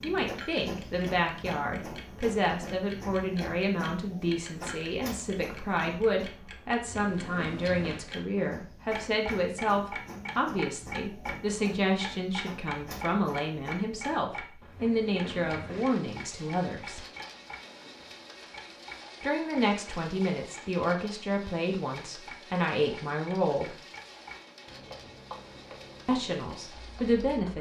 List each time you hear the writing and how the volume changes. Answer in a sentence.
You can't hear the writing here.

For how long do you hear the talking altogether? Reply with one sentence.
The talking can be heard for 23 seconds in total.